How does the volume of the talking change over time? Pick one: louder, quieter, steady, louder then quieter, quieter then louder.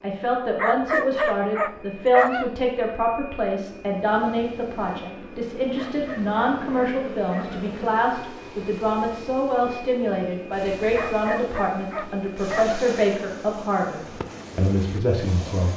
steady.